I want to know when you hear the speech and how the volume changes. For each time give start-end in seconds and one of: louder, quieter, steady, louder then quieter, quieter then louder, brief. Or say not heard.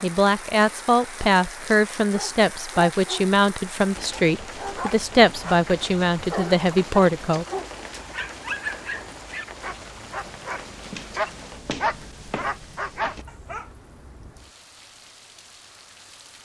0.0-7.5 steady.